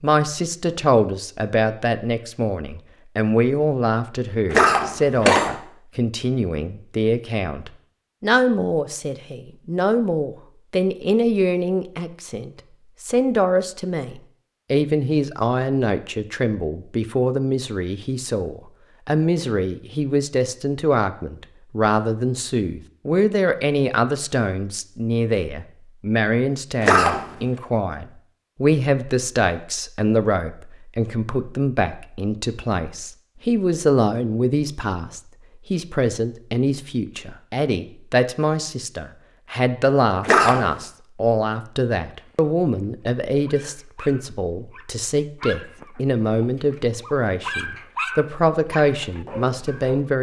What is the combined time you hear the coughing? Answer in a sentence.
You can hear the coughing for 2 seconds altogether.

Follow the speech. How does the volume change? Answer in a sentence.
The volume of the speech stays about the same.